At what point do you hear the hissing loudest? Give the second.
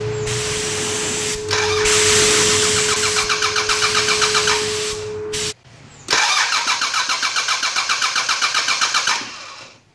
2 s.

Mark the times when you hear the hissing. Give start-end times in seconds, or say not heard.
0.0-5.5.